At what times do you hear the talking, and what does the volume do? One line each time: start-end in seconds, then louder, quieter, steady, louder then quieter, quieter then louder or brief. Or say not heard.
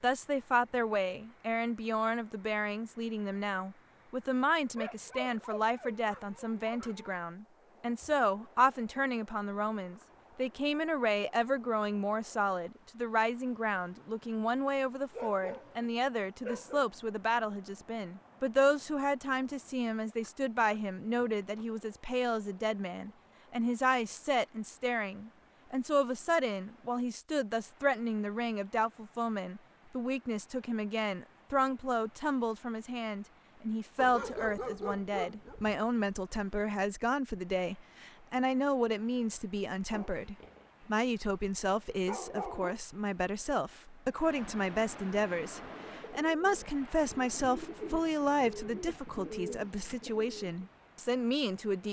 0.0-51.8 steady.